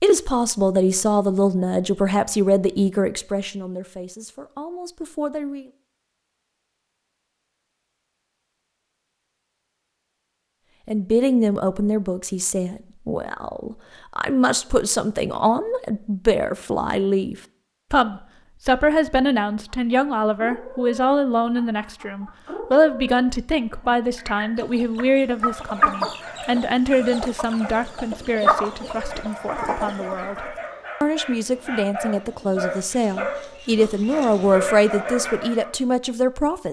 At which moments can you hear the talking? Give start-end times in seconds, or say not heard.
0.0-5.7, 10.8-36.6.